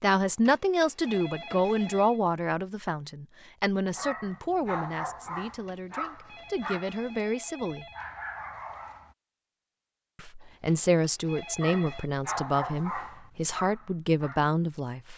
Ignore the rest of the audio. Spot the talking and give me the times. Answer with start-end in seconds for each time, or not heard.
0.0-7.8, 10.2-15.1.